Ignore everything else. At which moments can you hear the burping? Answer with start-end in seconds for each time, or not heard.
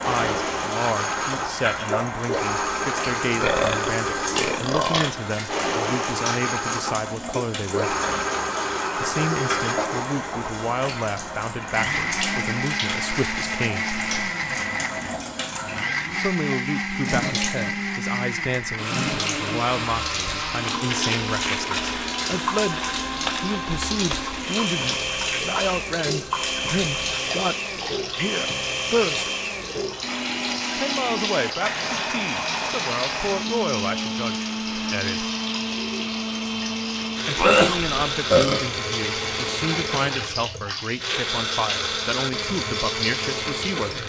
3.4-5.1, 37.4-38.6.